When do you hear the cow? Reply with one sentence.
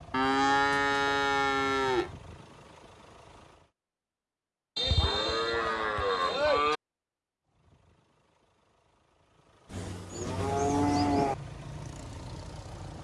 You can hear the cow from 0.1 to 2.1 s, from 4.8 to 6.8 s and from 9.7 to 11.3 s.